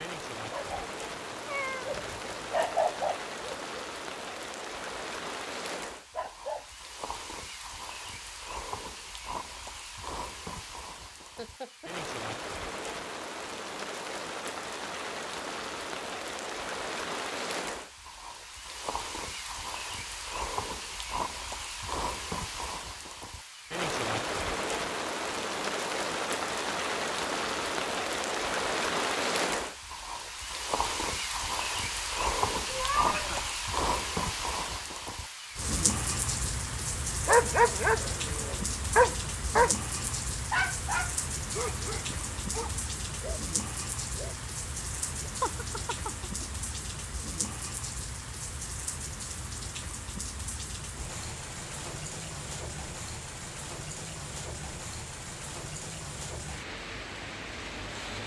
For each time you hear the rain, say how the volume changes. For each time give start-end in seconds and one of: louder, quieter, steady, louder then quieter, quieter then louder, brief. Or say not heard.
0.0-58.2 louder then quieter.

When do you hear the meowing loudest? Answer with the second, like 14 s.
33 s.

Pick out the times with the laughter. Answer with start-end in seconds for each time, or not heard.
11.3-11.9, 33.0-33.5, 45.4-46.5.